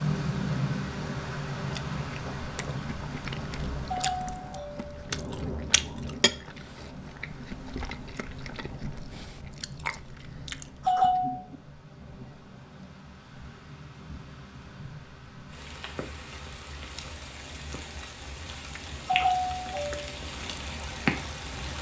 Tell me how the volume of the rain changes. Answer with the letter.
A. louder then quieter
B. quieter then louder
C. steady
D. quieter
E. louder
B.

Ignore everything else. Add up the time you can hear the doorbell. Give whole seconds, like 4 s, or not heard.
4 s.